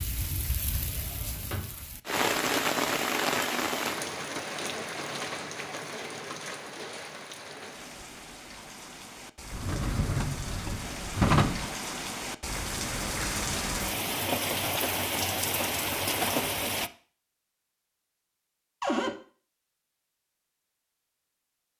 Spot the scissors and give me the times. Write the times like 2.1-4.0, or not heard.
not heard.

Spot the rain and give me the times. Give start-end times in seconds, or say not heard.
0.0-16.9.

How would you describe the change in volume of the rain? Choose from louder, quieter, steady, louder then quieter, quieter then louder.
quieter then louder.